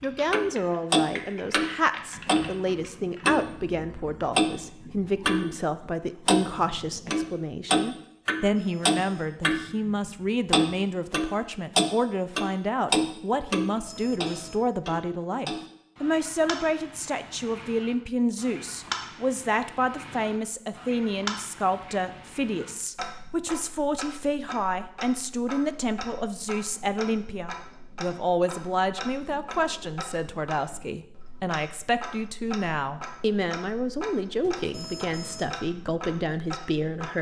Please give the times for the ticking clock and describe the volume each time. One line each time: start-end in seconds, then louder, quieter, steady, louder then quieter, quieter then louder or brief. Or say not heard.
0.3-5.5 quieter then louder
6.2-37.1 quieter.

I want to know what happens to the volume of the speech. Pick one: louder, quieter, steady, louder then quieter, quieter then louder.
steady.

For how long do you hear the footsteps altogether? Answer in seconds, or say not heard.
not heard.